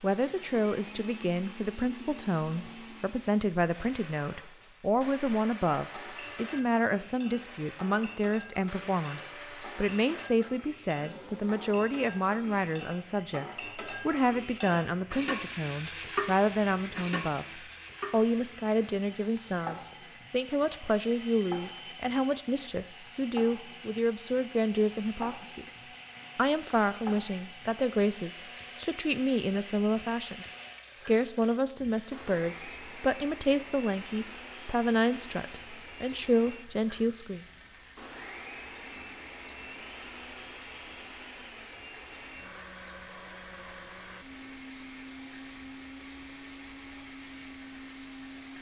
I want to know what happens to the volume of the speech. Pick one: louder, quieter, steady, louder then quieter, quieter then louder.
steady.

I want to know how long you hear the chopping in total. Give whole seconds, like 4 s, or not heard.
not heard.